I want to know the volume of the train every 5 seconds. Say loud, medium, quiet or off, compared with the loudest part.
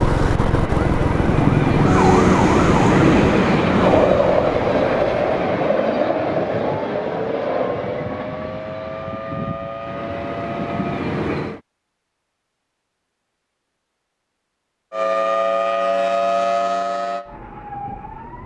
loud, medium, medium, off.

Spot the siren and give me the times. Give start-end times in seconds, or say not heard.
0.0-11.1, 14.9-18.4.